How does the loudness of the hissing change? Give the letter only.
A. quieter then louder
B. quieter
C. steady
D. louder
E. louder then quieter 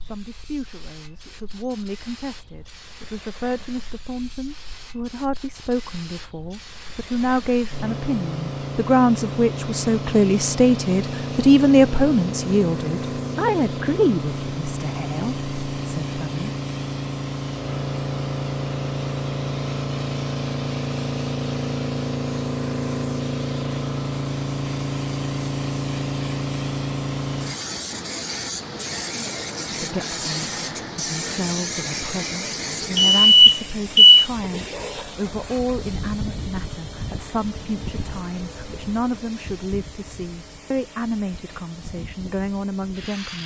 E.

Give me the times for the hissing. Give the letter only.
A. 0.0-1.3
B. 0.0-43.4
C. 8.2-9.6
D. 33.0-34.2
B.